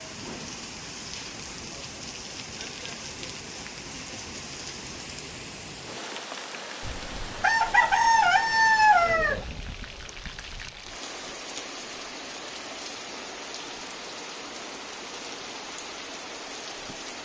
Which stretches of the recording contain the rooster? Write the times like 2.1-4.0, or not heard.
6.8-9.4.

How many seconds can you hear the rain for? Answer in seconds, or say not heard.
17 s.